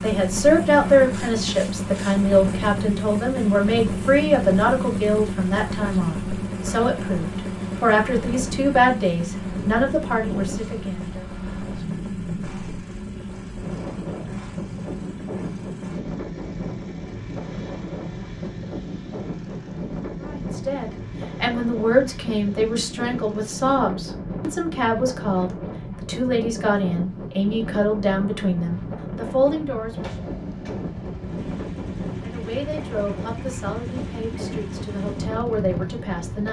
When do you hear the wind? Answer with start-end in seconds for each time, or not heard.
0.2-36.4.